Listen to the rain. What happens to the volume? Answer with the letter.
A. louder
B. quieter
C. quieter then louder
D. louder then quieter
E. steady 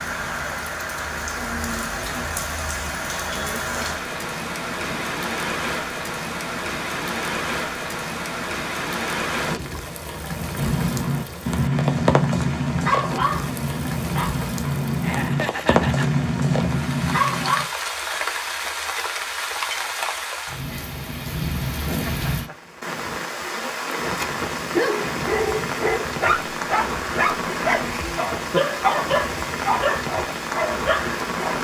E.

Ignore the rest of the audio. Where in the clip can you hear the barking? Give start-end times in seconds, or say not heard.
10.5-17.6, 24.6-31.5.